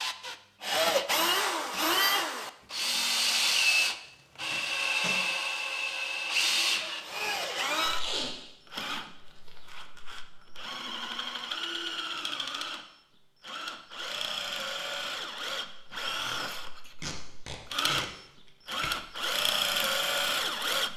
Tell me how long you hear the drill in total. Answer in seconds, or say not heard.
21 s.